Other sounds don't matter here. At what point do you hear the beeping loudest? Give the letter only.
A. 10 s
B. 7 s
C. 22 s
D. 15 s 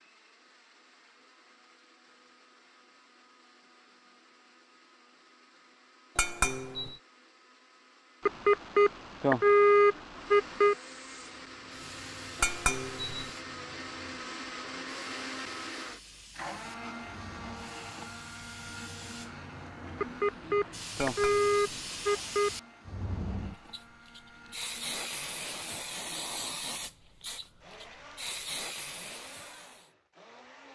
A.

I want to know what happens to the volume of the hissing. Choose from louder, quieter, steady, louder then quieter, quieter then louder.
louder.